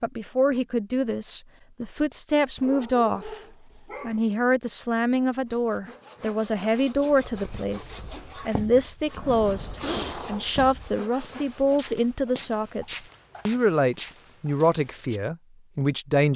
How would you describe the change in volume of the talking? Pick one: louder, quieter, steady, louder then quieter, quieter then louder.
steady.